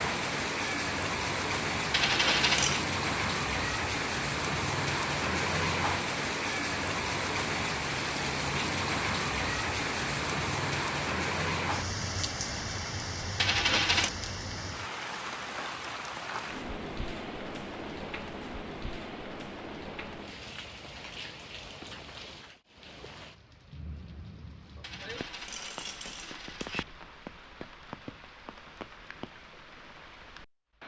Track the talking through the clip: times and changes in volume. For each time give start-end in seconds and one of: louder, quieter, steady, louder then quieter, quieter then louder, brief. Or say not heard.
not heard.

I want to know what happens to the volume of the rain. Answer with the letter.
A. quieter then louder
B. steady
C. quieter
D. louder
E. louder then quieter
C.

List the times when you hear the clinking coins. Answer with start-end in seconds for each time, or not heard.
1.9-2.9, 13.3-14.1, 24.8-26.9.